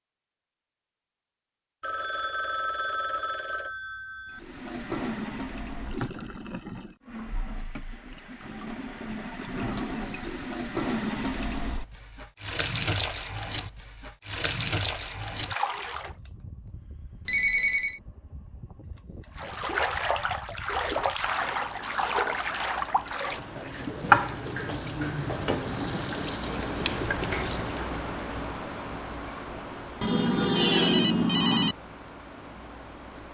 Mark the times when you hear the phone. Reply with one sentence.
You can hear the phone from 1.8 to 4.4 s, from 17.2 to 18.0 s and from 30.0 to 31.8 s.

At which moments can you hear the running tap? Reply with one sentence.
You can hear the running tap from 4.3 to 16.1 s and from 19.4 to 27.9 s.